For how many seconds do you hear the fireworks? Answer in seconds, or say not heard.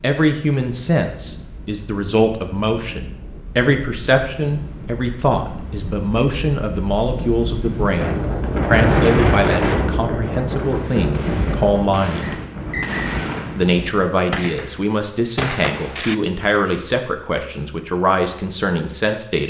6 s.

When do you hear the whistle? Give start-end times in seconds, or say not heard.
12.2-13.2.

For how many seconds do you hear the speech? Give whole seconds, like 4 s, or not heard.
18 s.